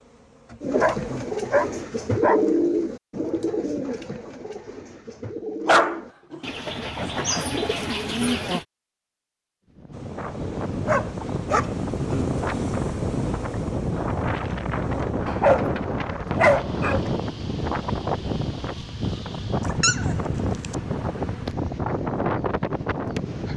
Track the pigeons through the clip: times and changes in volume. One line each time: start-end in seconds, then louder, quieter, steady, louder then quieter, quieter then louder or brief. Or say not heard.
0.6-8.7 quieter then louder.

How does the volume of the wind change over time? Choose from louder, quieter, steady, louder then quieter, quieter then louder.
steady.